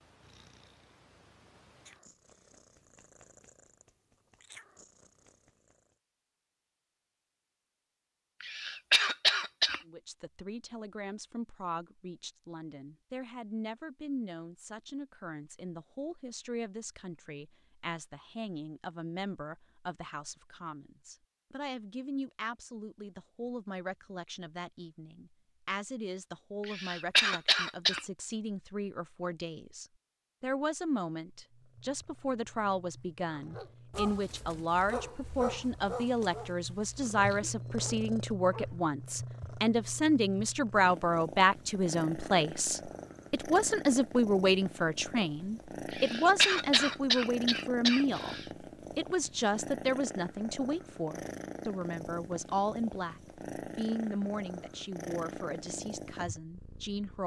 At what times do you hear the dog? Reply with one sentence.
You can hear the dog from 33.3 to 38.9 s.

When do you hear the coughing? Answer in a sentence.
You can hear the coughing from 8.4 to 9.8 s, from 26.6 to 28.0 s and from 45.9 to 48.5 s.